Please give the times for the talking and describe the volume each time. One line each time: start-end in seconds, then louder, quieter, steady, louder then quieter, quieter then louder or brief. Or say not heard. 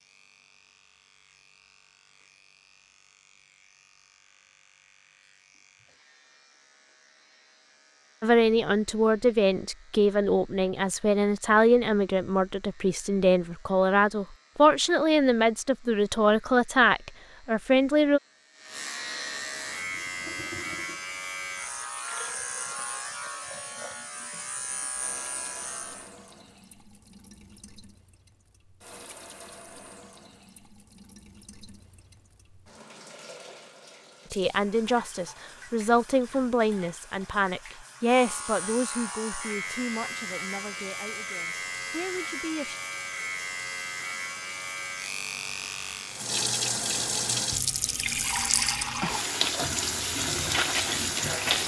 8.2-18.2 steady
34.3-42.8 quieter.